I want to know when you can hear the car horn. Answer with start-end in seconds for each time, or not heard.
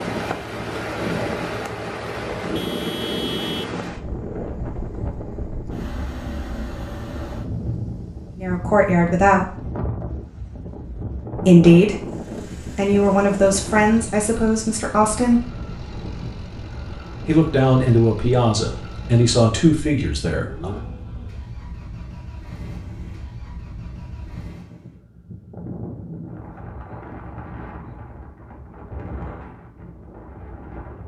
2.5-3.8.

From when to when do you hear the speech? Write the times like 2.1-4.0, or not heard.
8.4-9.7, 11.3-15.5, 17.2-20.8.